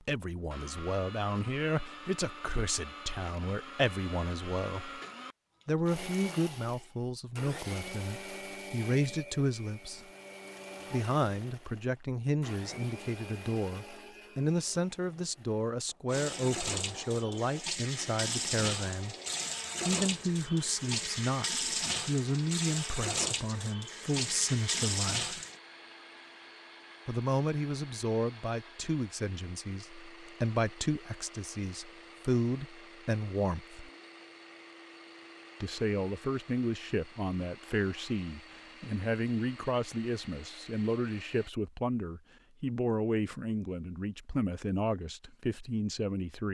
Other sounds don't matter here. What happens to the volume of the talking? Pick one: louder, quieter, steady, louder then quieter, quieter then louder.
steady.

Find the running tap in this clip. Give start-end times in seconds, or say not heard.
16.1-25.6.